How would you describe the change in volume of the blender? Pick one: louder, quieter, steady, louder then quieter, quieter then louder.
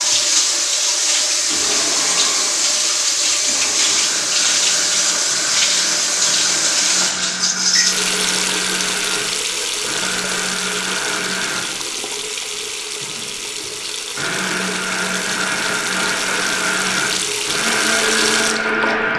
louder.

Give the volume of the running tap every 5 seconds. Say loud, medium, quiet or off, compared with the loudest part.
loud, loud, medium, medium.